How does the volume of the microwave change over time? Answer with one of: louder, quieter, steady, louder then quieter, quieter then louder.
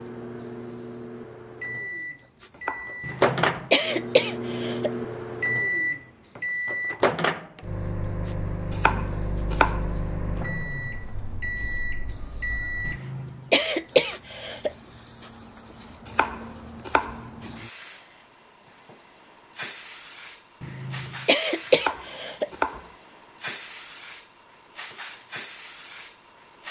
louder then quieter.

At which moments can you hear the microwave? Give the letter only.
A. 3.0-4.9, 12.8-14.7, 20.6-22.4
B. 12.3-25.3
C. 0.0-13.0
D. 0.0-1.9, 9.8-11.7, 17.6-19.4
C.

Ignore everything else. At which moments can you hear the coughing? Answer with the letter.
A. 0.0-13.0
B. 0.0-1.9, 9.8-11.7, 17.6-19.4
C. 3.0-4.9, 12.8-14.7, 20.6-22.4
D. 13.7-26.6
C.